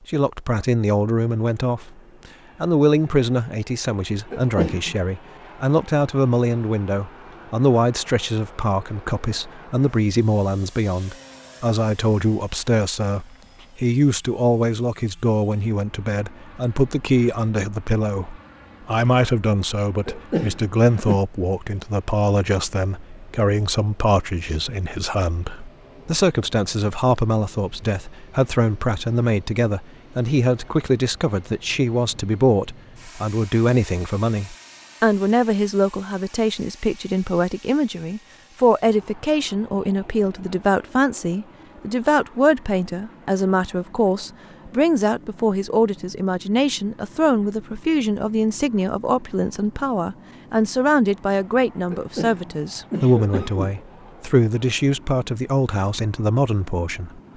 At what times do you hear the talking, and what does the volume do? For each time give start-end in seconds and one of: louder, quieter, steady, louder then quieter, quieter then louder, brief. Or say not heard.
0.1-1.9 brief
2.6-57.3 steady.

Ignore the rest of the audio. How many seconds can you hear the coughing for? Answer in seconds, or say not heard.
4 s.